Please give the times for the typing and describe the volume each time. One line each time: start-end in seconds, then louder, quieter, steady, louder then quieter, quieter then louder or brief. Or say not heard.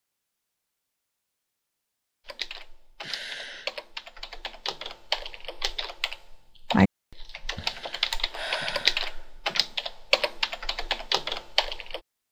2.2-12.0 louder.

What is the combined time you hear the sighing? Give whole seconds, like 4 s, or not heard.
3 s.